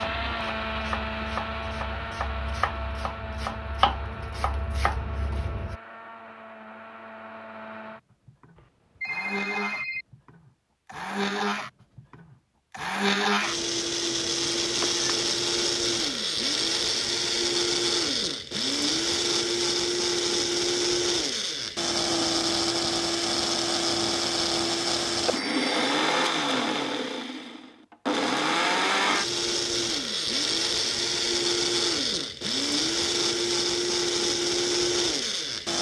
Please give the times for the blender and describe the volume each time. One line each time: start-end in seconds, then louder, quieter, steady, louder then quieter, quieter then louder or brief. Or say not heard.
0.0-35.7 louder.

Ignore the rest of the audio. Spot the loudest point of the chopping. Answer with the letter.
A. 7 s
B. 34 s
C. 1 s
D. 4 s
D.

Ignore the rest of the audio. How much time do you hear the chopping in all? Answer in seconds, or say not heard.
6 s.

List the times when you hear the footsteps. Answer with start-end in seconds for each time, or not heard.
not heard.